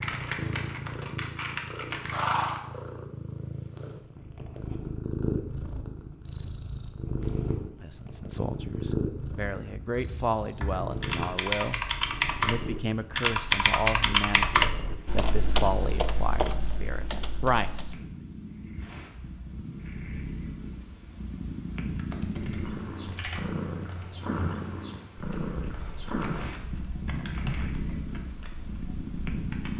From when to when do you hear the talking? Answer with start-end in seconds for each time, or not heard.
7.8-11.8, 12.4-17.9.